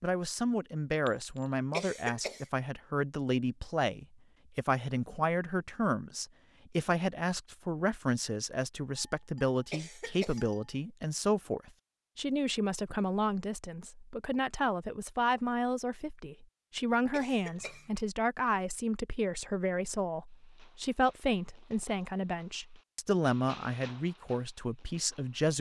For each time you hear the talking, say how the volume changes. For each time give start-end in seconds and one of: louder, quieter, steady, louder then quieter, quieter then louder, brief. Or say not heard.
0.0-25.5 steady.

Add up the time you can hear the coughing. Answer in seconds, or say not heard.
2 s.